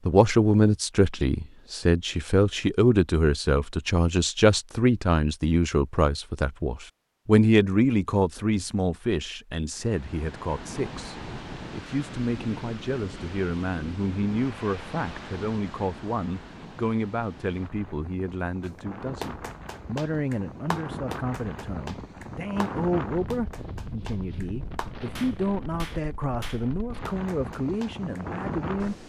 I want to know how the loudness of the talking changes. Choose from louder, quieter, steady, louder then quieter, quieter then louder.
quieter.